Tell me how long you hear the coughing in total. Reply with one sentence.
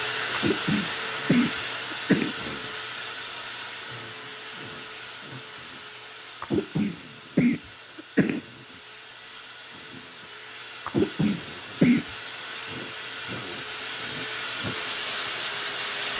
You can hear the coughing for 5 seconds altogether.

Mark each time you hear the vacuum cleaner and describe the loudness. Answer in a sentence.
The vacuum cleaner can be heard from 0.0 to 16.1 s, getting quieter then louder.